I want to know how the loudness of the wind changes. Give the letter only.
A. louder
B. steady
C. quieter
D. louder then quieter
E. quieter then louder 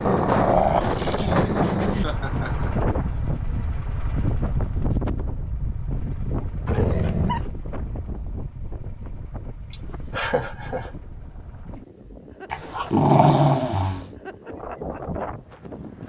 E.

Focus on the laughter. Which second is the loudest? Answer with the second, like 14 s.
10 s.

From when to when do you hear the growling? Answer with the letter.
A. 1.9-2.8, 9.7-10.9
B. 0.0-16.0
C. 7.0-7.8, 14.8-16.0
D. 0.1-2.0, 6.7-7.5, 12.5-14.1
D.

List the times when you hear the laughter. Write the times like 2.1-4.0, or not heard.
1.9-2.8, 9.7-10.9.